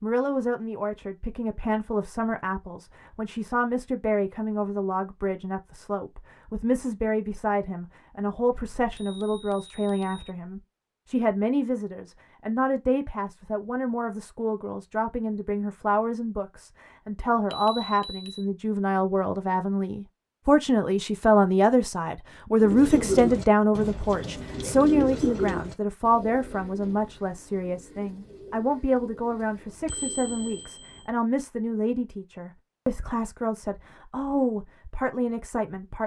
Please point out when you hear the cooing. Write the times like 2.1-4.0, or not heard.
22.6-30.8.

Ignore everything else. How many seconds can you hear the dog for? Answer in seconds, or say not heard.
not heard.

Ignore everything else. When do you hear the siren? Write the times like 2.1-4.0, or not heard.
not heard.